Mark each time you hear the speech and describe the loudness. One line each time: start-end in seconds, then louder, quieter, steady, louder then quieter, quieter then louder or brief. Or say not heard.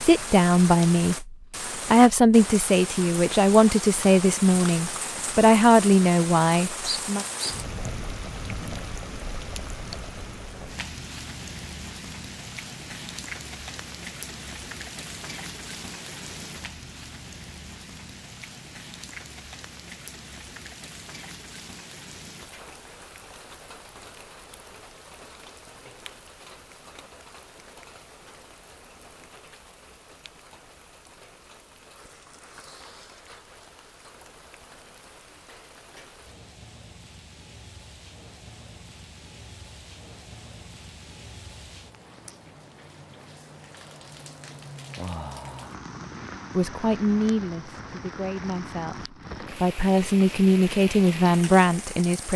0.0-7.2 steady
46.5-52.3 quieter then louder.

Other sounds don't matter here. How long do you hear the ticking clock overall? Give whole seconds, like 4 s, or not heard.
not heard.